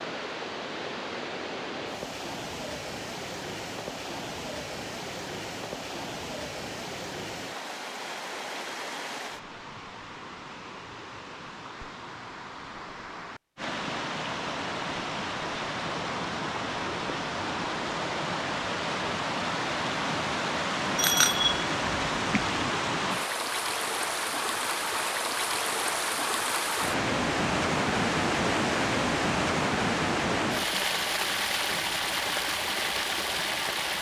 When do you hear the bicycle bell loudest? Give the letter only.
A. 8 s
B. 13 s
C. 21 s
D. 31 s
C.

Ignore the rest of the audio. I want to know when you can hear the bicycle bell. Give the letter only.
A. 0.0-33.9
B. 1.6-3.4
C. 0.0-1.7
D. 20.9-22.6
D.